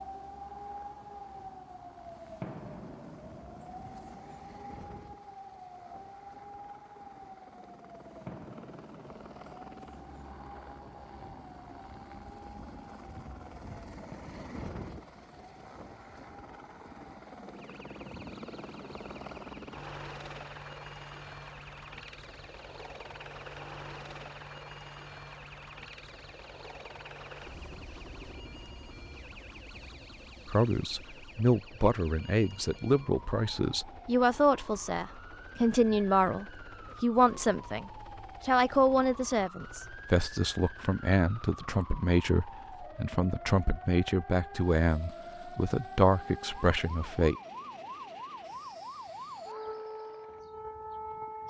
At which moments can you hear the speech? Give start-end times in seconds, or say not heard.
30.4-47.4.